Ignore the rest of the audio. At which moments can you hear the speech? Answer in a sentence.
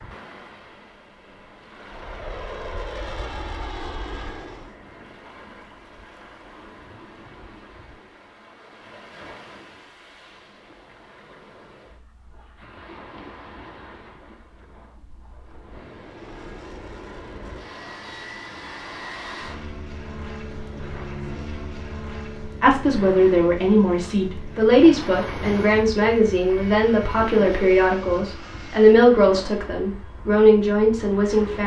The speech can be heard from 22.6 to 31.6 s.